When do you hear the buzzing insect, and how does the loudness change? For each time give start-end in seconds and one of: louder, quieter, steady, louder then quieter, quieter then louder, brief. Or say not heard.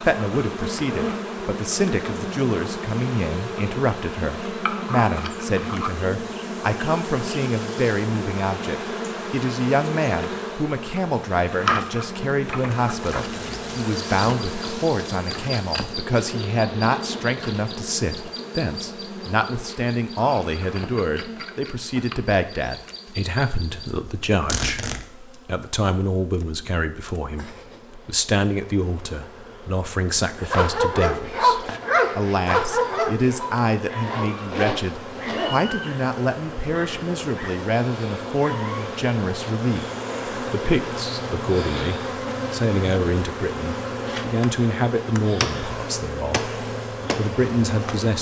0.0-48.1 quieter then louder.